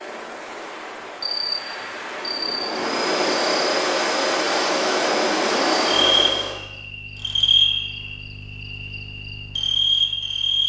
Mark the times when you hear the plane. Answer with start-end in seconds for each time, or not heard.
2.6-6.6.